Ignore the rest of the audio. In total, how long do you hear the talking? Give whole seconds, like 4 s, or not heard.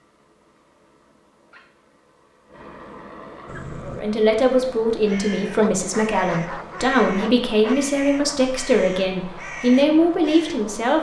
7 s.